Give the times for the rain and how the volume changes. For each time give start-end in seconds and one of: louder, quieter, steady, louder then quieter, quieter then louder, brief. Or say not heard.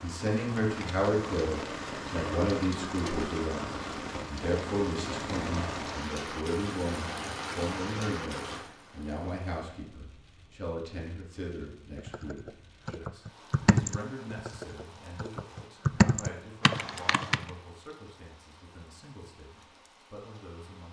0.0-20.8 quieter.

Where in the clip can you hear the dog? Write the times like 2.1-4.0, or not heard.
not heard.